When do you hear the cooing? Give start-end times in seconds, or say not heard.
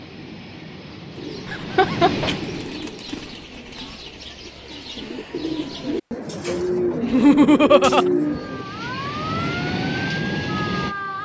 1.1-8.7.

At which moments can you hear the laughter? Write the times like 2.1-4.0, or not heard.
1.4-2.3, 7.0-8.1.